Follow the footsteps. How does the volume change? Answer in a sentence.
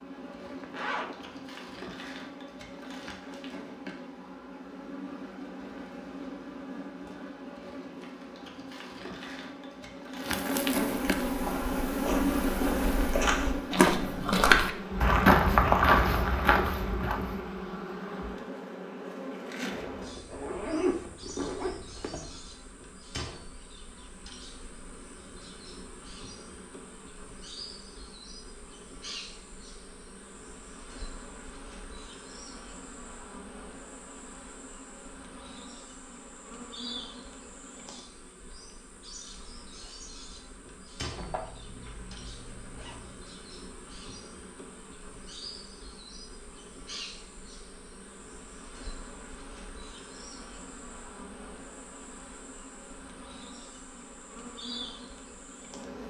The loudness of the footsteps goes up, then down.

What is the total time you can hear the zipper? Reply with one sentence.
The zipper can be heard for 6 seconds in total.